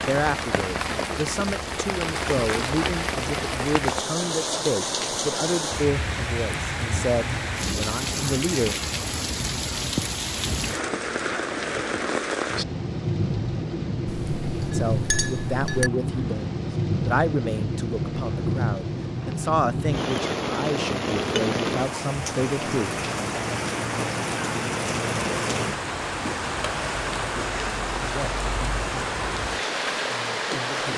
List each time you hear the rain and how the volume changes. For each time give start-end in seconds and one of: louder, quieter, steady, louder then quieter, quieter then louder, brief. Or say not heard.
0.0-30.9 steady.